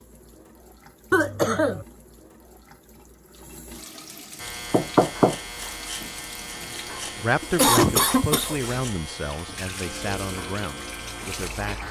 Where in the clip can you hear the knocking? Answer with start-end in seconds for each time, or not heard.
4.7-5.7.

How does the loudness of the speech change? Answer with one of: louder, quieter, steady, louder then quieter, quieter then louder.
quieter.